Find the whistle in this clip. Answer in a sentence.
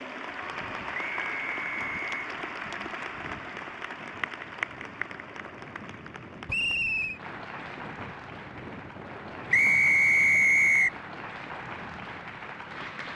The whistle can be heard from 0.9 to 2.2 s, from 6.5 to 7.2 s and from 9.5 to 10.9 s.